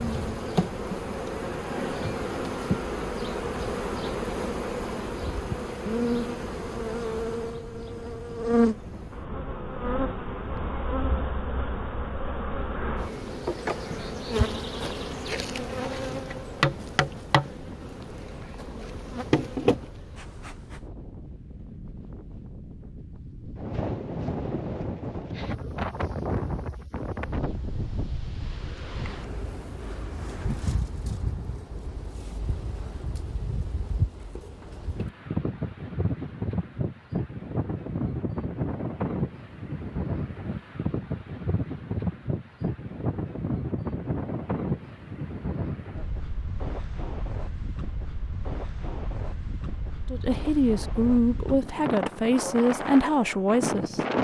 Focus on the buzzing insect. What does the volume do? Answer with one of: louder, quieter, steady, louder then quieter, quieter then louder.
steady.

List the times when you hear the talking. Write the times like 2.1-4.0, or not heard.
50.1-54.0.